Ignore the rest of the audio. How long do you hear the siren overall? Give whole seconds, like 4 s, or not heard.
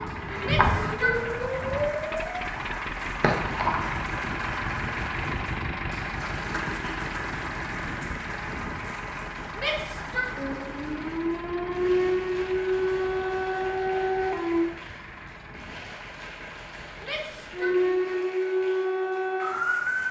11 s.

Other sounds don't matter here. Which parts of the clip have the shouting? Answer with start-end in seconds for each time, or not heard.
0.4-1.4, 9.6-10.3, 17.0-17.8.